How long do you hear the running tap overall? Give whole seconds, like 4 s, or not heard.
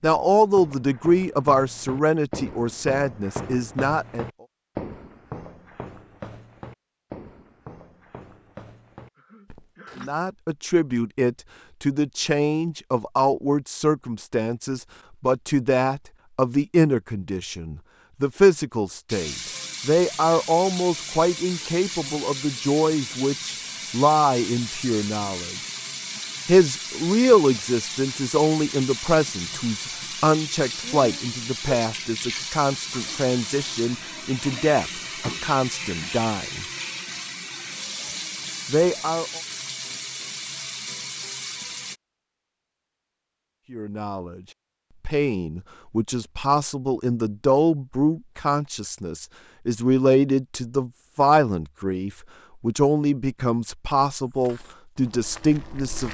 23 s.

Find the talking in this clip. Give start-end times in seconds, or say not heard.
0.0-4.2, 9.9-25.6, 26.4-36.6, 38.7-39.4, 43.7-44.4, 45.0-56.0.